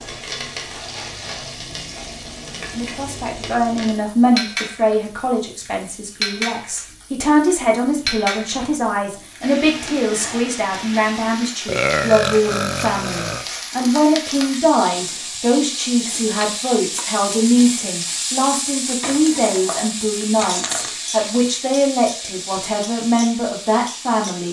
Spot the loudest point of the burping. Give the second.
12 s.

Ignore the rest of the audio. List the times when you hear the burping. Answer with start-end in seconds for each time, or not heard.
11.7-13.4.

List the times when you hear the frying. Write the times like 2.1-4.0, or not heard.
0.0-24.4.